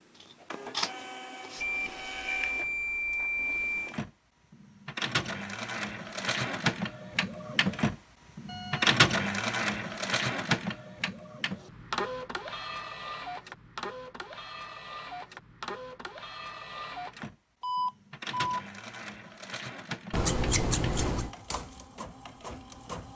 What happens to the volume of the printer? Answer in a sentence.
The volume of the printer goes up, then down.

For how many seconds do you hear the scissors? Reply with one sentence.
You can hear the scissors for 3 seconds altogether.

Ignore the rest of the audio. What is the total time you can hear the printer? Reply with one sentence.
You can hear the printer for 23 seconds altogether.